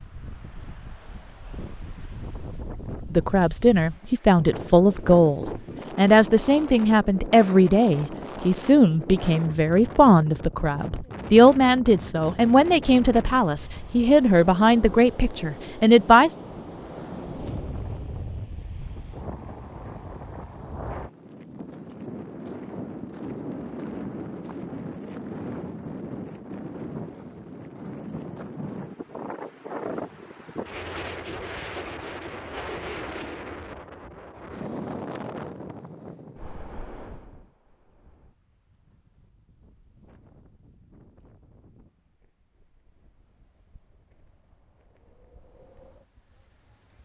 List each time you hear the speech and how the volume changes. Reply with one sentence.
You can hear the speech from 3.1 to 16.3 s, at a steady volume.